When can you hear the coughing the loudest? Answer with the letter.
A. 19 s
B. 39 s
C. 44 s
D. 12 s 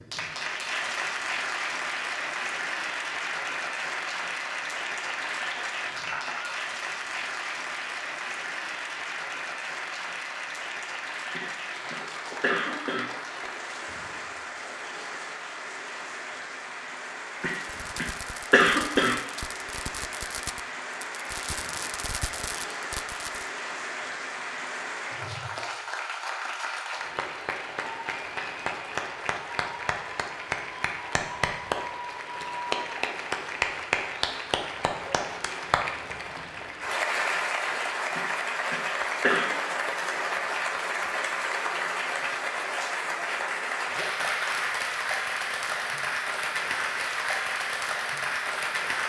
A.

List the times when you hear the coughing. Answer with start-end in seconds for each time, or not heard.
11.3-13.1, 17.4-19.2, 38.1-39.5.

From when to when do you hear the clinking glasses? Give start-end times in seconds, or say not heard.
6.0-6.6.